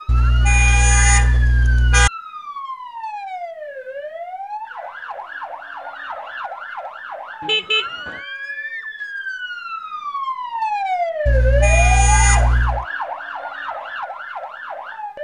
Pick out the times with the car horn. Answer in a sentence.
The car horn can be heard from 0.1 to 2.1 s, from 7.4 to 8.2 s and from 11.2 to 12.8 s.